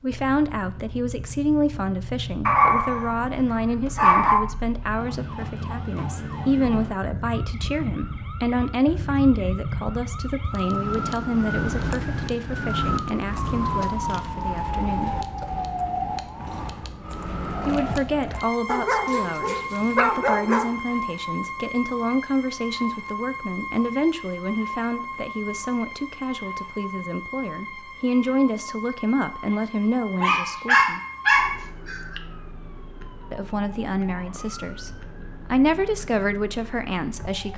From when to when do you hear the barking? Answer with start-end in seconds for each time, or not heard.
2.5-3.2, 4.0-4.5, 18.6-20.8, 30.2-32.2.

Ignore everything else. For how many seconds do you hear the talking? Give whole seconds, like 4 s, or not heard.
32 s.